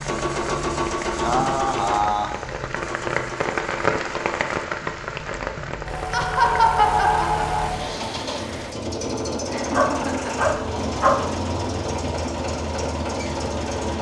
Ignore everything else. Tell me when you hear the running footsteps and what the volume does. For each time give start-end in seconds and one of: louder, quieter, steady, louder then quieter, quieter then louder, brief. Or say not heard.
not heard.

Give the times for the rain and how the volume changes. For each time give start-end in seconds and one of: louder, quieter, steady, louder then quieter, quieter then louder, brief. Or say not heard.
0.0-8.8 louder then quieter.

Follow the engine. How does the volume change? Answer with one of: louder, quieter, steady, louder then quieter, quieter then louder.
quieter then louder.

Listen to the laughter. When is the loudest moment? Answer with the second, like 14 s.
7 s.